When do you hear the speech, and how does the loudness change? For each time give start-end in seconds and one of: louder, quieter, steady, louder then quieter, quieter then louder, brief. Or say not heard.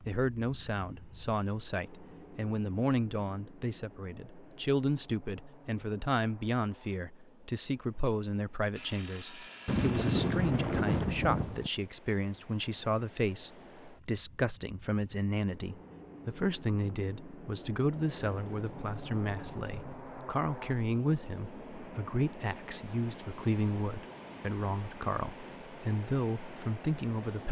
0.0-27.4 steady.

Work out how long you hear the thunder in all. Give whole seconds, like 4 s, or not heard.
4 s.